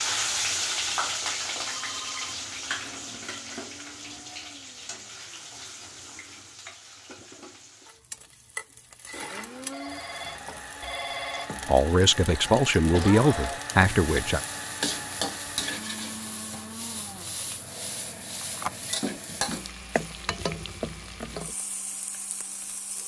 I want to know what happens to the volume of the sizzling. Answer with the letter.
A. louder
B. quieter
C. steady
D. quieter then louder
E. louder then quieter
D.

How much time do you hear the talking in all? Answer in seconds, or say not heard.
3 s.